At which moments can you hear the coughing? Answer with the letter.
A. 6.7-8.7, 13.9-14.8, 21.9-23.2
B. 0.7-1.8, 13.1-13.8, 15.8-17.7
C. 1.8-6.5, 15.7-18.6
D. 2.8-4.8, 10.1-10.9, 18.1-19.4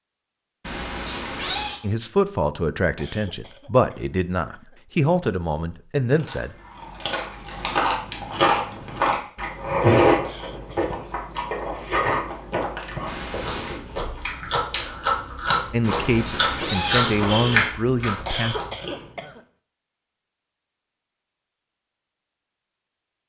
D.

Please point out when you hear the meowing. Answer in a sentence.
You can hear the meowing from 0.7 to 1.8 s, from 13.1 to 13.8 s and from 15.8 to 17.7 s.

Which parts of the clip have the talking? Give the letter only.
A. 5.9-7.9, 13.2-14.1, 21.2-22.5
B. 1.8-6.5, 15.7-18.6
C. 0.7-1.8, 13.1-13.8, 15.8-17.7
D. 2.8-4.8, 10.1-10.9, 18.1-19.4
B.